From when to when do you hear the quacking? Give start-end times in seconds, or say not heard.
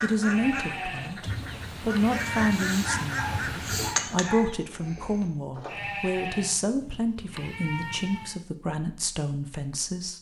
0.0-4.5.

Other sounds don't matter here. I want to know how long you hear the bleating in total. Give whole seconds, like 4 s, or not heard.
5 s.